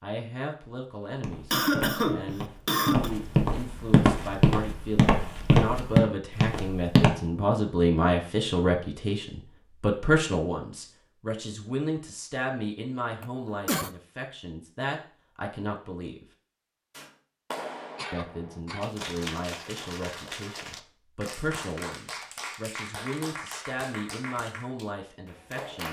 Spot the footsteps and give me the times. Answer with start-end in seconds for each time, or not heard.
1.1-7.2.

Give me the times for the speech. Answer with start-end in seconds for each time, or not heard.
0.0-16.2, 18.1-25.8.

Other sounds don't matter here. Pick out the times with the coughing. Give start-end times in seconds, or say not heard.
1.5-3.1, 13.2-13.9, 17.9-19.2.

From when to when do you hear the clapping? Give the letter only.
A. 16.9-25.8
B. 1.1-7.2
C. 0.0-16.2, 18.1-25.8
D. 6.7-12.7
A.